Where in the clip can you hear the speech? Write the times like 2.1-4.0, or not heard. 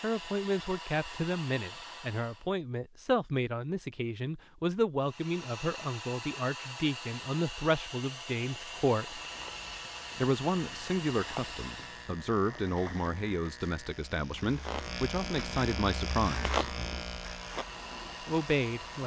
0.0-9.2, 10.2-16.6, 18.2-19.0.